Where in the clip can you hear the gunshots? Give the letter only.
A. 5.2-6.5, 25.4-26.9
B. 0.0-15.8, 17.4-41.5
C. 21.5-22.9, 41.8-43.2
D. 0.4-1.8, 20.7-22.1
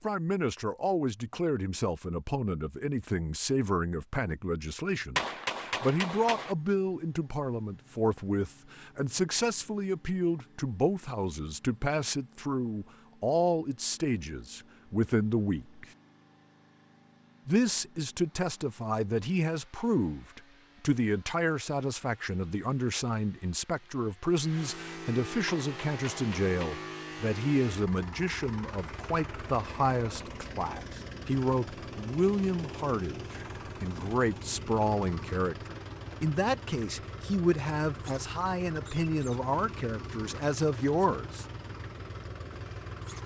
A.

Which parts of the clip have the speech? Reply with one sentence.
The speech can be heard from 0.0 to 15.8 s and from 17.4 to 41.5 s.